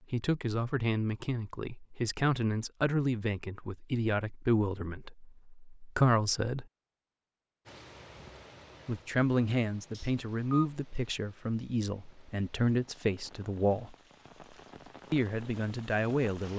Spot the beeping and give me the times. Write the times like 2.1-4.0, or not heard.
9.9-10.7.